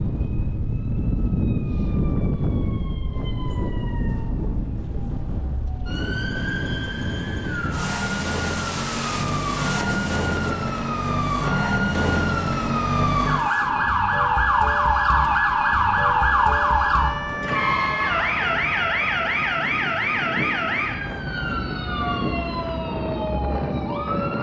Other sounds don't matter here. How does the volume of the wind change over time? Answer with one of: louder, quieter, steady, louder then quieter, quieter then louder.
quieter then louder.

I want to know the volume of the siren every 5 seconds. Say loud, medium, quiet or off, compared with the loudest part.
quiet, medium, loud, loud, medium.